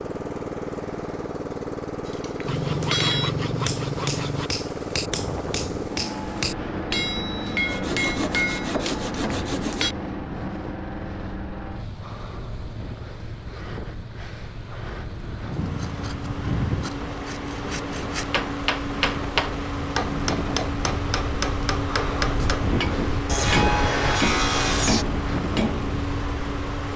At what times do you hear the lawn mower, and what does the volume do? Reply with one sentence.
The lawn mower can be heard from 0.0 to 26.9 s, getting quieter then louder.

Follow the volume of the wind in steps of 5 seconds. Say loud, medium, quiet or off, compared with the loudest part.
off, medium, medium, medium, loud, loud.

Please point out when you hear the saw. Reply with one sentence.
The saw can be heard from 2.5 to 4.5 s, from 7.7 to 9.9 s, from 15.5 to 18.2 s and from 23.2 to 25.1 s.